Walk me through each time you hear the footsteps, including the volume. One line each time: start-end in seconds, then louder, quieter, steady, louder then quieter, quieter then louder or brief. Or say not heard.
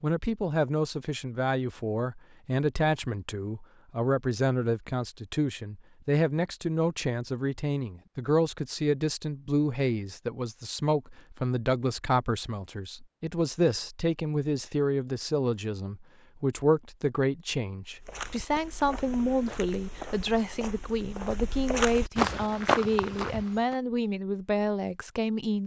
17.9-23.8 louder.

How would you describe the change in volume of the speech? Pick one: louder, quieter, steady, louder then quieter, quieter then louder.
steady.